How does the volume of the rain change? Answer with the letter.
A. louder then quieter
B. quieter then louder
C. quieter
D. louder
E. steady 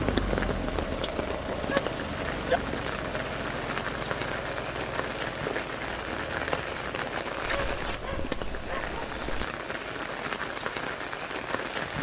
E.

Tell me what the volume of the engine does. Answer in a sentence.
The volume of the engine goes down.